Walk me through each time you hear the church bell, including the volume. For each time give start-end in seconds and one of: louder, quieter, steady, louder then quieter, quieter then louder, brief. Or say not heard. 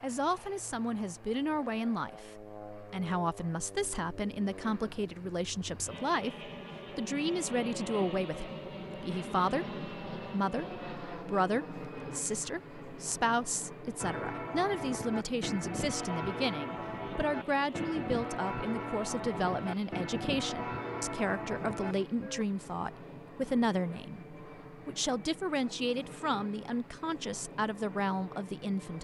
13.9-22.4 steady.